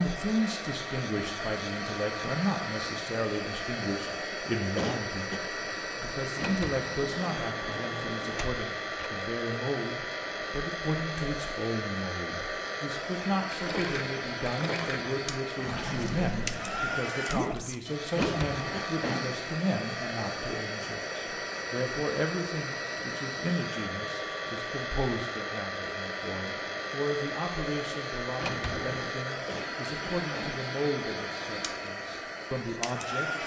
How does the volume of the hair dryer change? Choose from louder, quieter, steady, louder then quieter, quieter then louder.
steady.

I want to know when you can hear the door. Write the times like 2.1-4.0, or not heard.
6.3-9.1, 18.1-18.9, 28.4-29.1.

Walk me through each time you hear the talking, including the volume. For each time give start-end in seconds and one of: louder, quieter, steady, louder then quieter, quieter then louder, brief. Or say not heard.
0.0-33.4 steady.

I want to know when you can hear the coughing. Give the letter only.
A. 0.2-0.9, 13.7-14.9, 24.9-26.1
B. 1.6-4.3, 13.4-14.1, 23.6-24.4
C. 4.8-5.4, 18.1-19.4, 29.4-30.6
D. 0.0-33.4
C.